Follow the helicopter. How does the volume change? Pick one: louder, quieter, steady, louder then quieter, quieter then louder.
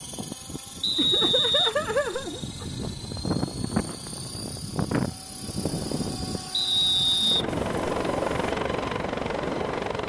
louder.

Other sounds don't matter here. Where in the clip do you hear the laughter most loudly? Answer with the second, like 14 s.
2 s.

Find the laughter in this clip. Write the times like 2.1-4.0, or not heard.
0.9-2.9, 7.5-8.6.